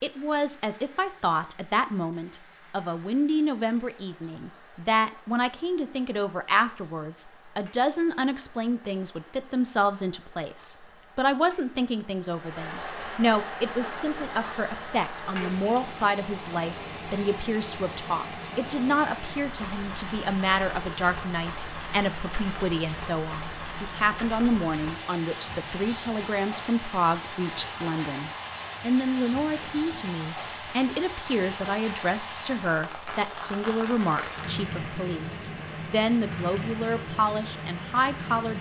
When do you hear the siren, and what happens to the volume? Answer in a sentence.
The siren can't be heard in this clip.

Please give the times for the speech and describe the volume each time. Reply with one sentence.
The speech can be heard from 0.0 to 38.5 s, at a steady volume.